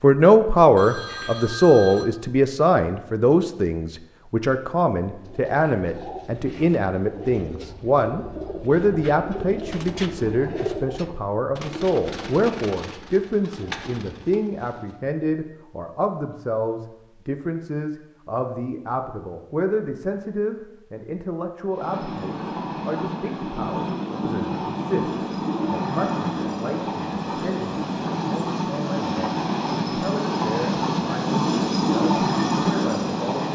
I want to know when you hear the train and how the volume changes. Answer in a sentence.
The train can be heard from 21.7 to 33.4 s, getting louder.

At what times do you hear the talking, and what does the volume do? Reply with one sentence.
You can hear the talking from 0.0 to 33.4 s, getting quieter.